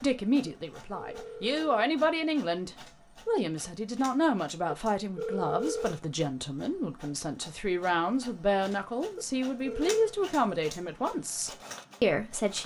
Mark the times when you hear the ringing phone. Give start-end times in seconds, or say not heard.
0.5-1.6, 4.7-6.0, 9.2-10.2.